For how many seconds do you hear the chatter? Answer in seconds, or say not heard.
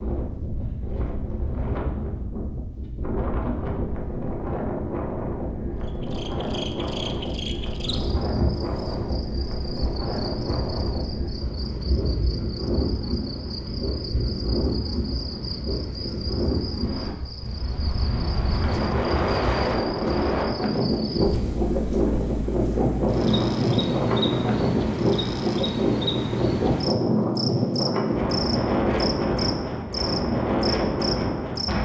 not heard.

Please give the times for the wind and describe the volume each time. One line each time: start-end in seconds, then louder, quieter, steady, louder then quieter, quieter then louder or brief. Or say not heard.
0.0-31.7 louder.